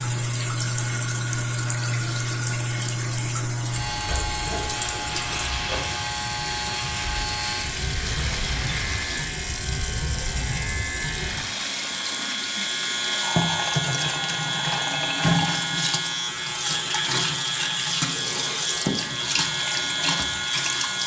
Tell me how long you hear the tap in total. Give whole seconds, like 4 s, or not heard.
21 s.